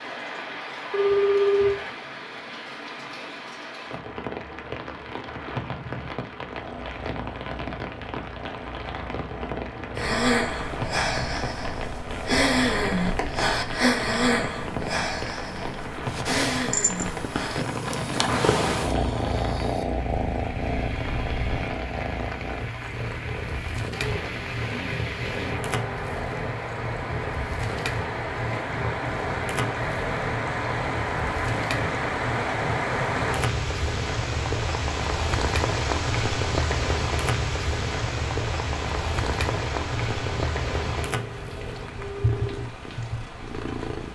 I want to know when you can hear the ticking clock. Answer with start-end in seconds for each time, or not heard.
not heard.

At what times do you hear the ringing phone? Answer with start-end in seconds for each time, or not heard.
0.9-1.9, 42.0-42.6.